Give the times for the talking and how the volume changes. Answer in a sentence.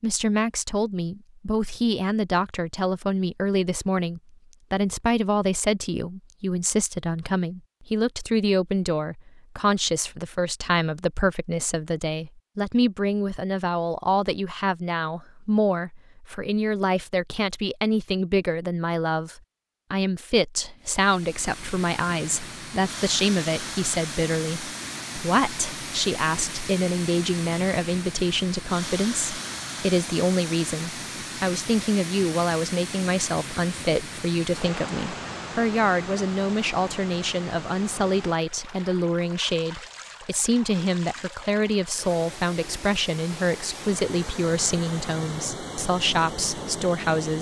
You can hear the talking from 0.0 to 47.3 s, at a steady volume.